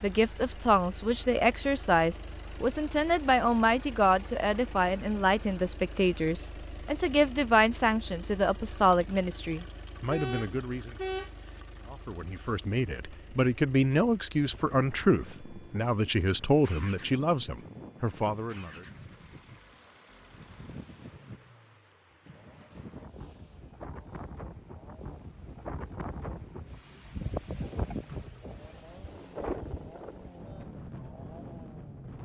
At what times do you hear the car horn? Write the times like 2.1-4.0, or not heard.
10.1-11.6.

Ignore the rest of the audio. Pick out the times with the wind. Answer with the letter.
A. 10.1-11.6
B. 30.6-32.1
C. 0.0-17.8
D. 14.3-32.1
D.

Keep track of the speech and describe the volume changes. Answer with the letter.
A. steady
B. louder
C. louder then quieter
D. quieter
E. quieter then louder
A.